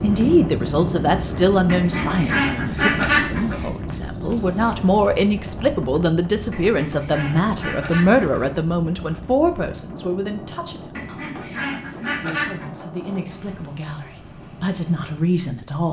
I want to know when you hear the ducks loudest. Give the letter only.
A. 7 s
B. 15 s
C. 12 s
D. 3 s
D.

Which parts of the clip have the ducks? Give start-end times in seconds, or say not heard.
1.6-3.7, 6.5-8.5, 10.9-12.7.